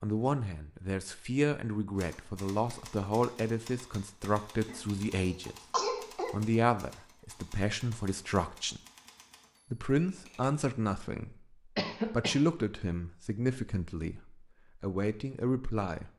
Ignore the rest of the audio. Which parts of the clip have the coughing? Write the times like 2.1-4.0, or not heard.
4.7-6.3, 11.8-12.4.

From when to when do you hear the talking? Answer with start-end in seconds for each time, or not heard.
0.0-5.5, 6.3-8.8, 9.7-16.1.